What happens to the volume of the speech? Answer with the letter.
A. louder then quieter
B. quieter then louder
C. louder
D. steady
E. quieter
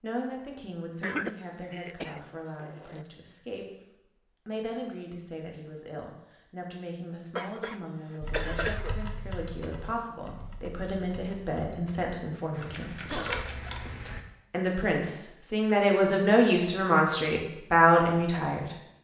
C.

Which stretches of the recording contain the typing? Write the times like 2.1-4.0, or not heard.
8.2-14.2.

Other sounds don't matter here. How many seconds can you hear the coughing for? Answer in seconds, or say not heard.
4 s.